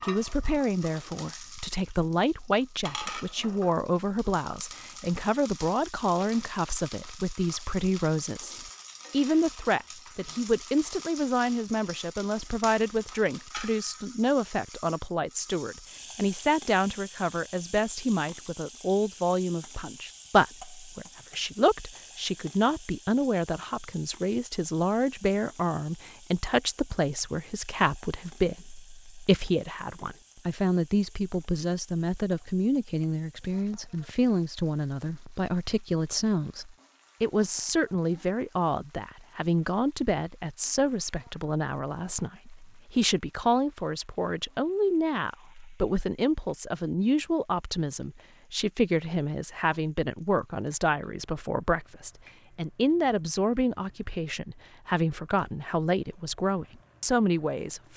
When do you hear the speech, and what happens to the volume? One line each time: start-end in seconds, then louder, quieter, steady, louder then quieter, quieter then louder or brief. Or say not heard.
0.0-57.9 steady.